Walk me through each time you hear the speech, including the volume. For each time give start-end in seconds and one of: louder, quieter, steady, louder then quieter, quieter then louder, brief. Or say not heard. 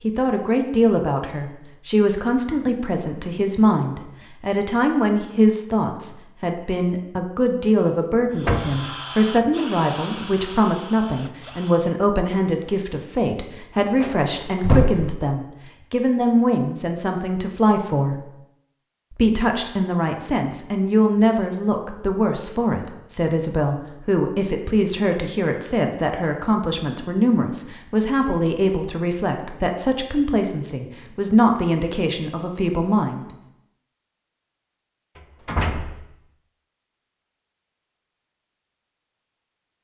0.0-18.2 steady
19.1-33.2 steady.